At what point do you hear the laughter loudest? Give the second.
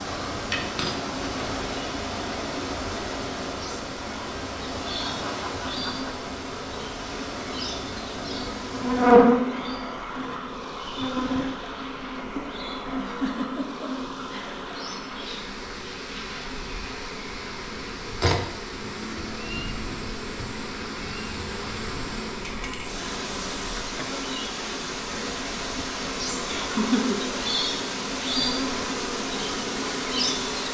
27 s.